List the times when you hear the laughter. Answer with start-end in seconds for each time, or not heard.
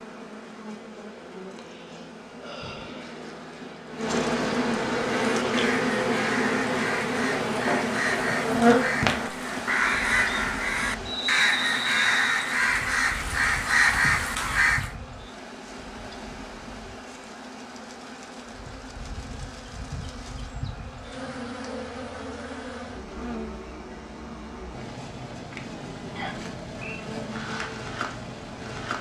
not heard.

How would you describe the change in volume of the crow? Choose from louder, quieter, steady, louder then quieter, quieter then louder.
louder.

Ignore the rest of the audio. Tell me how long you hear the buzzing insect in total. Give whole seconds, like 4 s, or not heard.
29 s.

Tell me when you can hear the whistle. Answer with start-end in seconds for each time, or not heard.
11.1-12.6, 26.1-27.0.